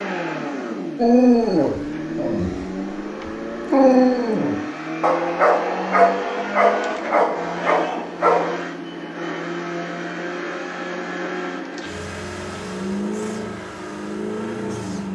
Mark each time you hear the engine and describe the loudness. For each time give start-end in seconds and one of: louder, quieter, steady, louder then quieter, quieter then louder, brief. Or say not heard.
0.0-15.0 steady.